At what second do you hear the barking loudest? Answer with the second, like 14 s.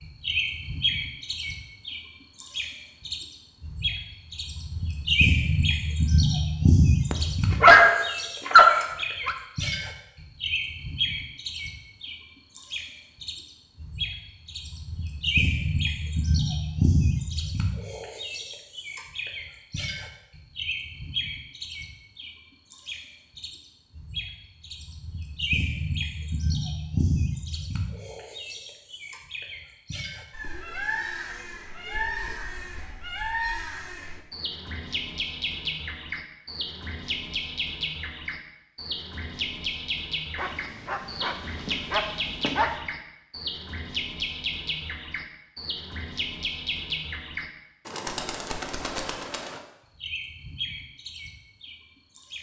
8 s.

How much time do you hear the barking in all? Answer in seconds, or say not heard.
5 s.